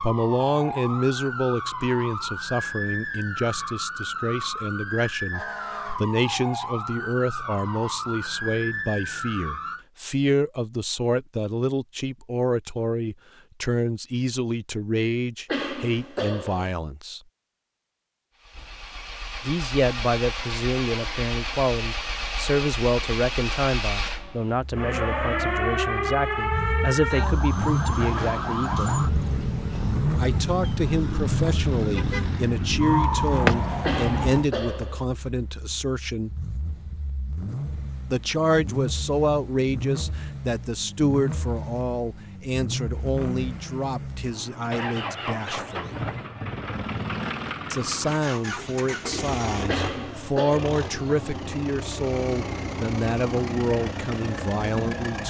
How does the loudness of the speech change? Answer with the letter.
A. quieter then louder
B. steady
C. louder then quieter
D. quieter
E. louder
B.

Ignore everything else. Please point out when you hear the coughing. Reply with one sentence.
You can hear the coughing from 15.4 to 16.7 s, from 33.8 to 35.0 s and from 49.6 to 50.8 s.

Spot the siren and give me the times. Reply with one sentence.
You can hear the siren from 0.0 to 9.8 s and from 24.7 to 34.5 s.